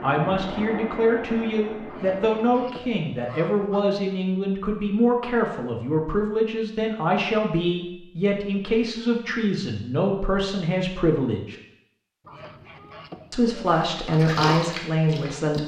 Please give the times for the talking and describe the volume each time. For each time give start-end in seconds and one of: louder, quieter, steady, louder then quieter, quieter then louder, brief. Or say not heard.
0.0-11.6 steady
13.3-15.6 brief.